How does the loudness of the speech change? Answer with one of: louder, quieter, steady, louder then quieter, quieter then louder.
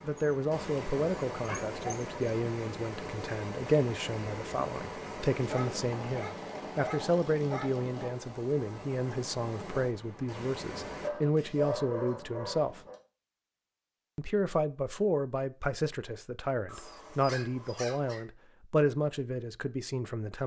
steady.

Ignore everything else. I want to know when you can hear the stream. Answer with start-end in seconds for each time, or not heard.
0.0-11.1.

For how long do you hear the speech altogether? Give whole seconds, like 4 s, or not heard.
19 s.